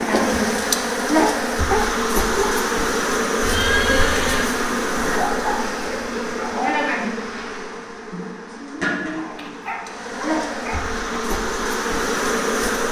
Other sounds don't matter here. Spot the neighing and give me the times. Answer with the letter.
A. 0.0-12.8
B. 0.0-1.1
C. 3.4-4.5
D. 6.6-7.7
C.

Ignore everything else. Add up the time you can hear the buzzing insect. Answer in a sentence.
The buzzing insect can be heard for 13 seconds in total.